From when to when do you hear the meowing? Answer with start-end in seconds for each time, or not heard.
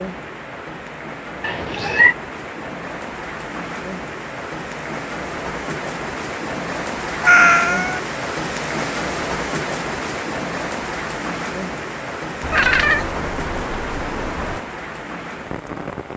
1.4-2.1, 7.2-8.0, 12.4-14.6.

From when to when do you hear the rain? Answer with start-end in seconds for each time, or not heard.
0.0-16.1.